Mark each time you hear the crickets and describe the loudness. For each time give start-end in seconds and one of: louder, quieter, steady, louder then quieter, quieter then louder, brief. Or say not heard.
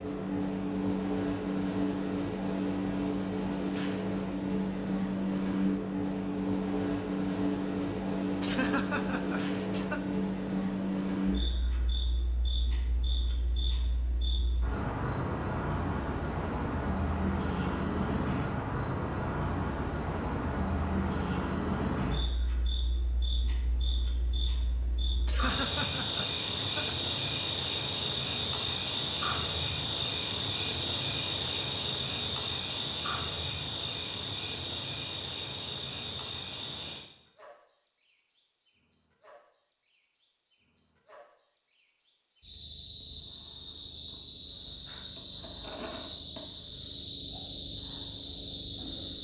0.0-49.1 quieter.